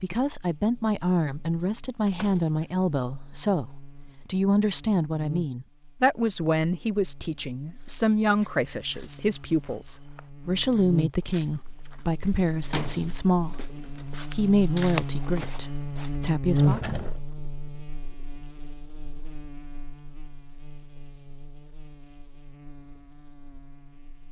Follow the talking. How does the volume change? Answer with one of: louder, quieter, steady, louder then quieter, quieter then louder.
steady.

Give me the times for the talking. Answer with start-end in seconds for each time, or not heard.
0.0-16.8.